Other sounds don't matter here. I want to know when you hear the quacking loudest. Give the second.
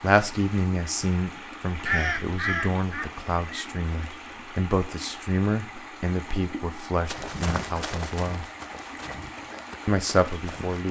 2 s.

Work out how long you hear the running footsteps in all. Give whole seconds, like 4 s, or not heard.
4 s.